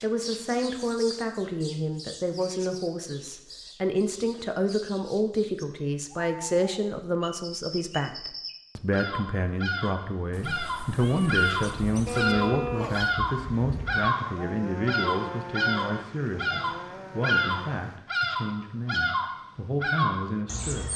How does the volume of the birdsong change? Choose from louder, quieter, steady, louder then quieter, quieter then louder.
louder.